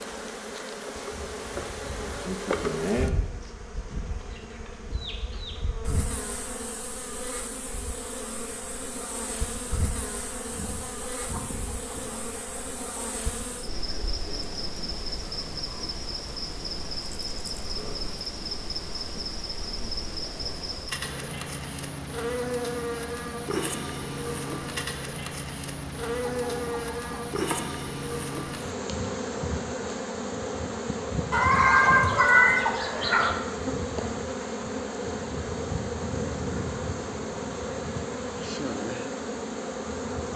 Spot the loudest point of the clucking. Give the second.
32 s.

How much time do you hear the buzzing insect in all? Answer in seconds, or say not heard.
40 s.